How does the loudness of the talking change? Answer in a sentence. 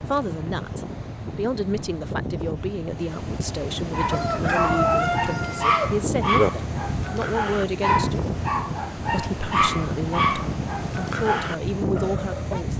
The volume of the talking stays about the same.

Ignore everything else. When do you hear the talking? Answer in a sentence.
You can hear the talking from 0.0 to 8.3 s and from 8.9 to 12.7 s.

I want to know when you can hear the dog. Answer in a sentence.
The dog can be heard from 3.9 to 12.6 s.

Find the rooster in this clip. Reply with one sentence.
The rooster can be heard from 4.1 to 6.5 s.